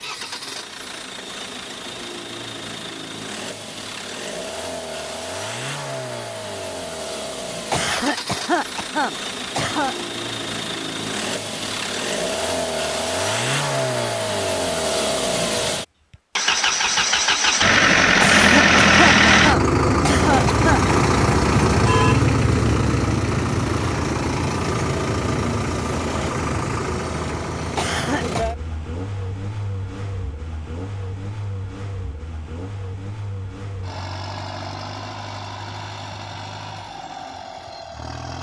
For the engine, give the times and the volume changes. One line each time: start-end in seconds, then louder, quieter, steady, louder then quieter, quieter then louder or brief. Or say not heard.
0.0-38.3 louder then quieter.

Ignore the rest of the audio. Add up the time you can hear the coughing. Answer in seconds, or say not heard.
6 s.